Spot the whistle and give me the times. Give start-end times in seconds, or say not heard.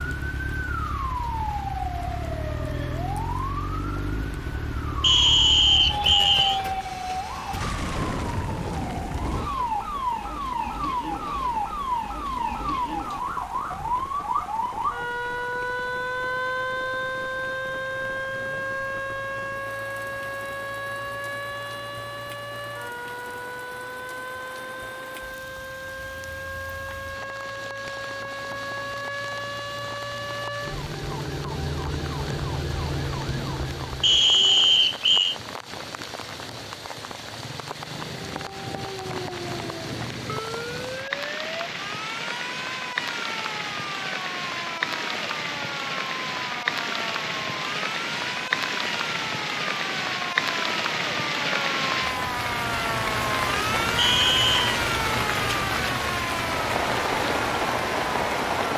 5.0-6.6, 34.0-35.4, 54.0-54.6.